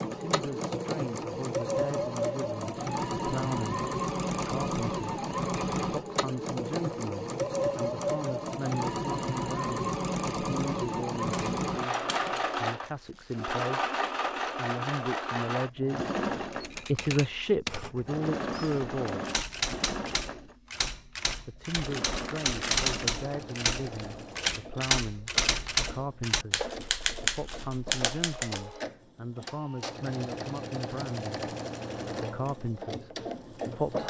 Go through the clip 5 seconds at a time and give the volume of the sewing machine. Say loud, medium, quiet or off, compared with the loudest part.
loud, loud, loud, loud, medium, medium, medium.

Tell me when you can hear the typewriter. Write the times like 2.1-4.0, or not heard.
16.5-28.8.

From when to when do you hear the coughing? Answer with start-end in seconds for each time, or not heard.
not heard.